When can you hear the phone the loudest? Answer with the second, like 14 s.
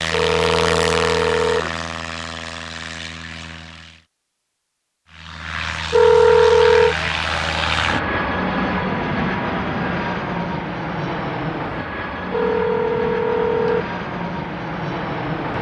6 s.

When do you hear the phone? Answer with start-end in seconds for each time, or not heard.
0.1-1.6, 5.9-7.0, 12.3-13.8.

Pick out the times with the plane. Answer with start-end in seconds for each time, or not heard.
0.0-4.0, 5.1-15.5.